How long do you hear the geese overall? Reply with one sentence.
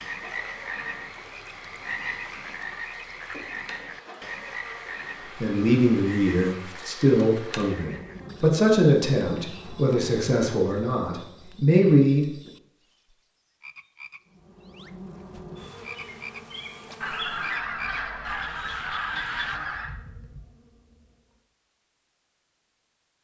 You can hear the geese for 3 seconds altogether.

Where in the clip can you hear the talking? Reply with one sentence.
You can hear the talking from 5.4 to 12.2 s.